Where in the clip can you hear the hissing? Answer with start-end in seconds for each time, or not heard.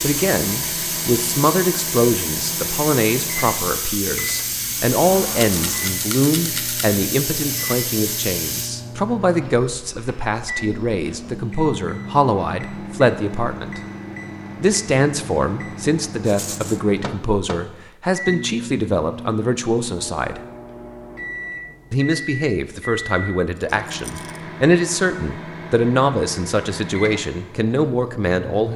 0.0-8.7.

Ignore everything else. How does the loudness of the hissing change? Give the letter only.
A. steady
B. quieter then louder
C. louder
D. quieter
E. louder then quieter
A.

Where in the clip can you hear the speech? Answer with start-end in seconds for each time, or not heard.
0.0-13.8, 14.6-20.4, 21.9-28.7.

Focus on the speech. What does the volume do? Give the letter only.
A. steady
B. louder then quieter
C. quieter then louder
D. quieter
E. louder
A.